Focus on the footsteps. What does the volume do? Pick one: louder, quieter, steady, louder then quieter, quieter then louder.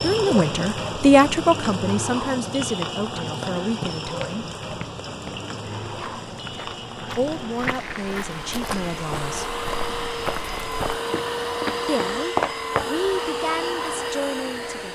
louder.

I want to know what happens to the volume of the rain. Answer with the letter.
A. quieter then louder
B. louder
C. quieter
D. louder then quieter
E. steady
C.